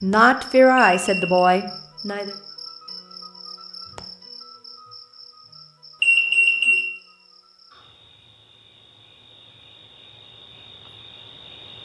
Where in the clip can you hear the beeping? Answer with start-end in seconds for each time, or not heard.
0.8-1.6, 6.0-6.8.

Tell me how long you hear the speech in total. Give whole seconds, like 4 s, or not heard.
2 s.